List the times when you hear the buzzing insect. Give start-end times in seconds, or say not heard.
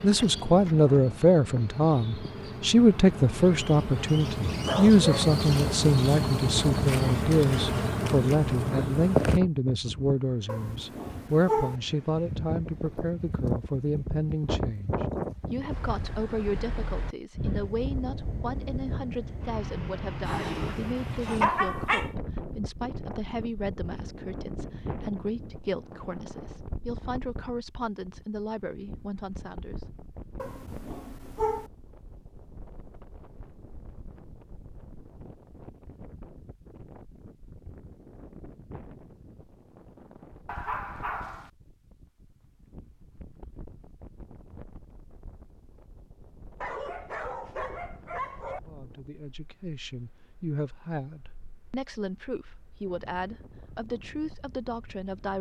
0.0-9.4.